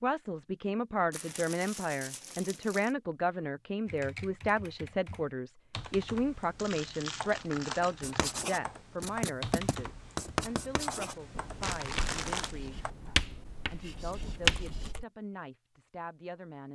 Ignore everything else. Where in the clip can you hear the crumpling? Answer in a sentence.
You can hear the crumpling from 1.1 to 3.0 s, from 6.5 to 8.5 s and from 11.6 to 12.6 s.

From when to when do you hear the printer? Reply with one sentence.
You can't hear the printer here.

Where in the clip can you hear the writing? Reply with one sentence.
The writing can be heard from 8.0 to 14.9 s.